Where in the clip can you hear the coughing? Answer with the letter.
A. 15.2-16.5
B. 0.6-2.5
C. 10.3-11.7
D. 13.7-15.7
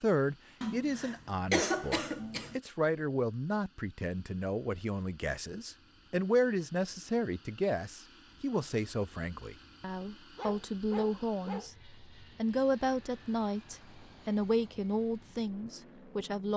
B.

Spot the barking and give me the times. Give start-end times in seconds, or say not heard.
10.3-11.7.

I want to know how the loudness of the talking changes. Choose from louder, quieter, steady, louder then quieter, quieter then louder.
steady.